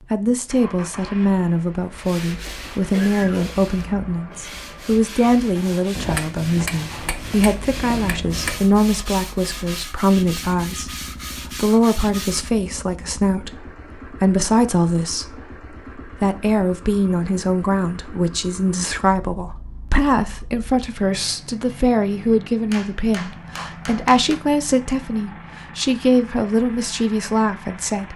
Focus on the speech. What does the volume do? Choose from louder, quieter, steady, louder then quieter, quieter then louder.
steady.